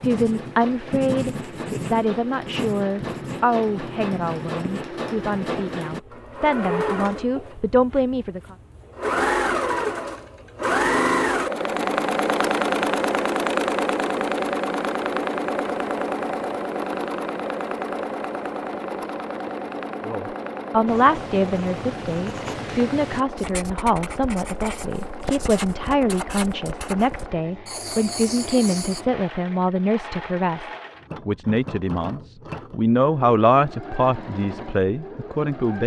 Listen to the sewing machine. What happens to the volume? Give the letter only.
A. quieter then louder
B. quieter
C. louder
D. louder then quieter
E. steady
D.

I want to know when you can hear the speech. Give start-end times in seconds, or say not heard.
0.0-8.6, 20.1-35.8.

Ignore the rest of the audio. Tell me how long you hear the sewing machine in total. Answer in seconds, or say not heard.
36 s.